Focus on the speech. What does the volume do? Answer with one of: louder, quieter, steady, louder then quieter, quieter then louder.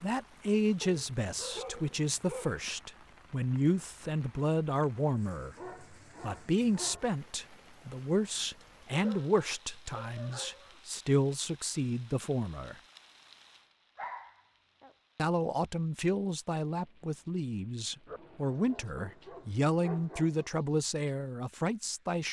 steady.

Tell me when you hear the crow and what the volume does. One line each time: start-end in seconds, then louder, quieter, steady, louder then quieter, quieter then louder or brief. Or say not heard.
not heard.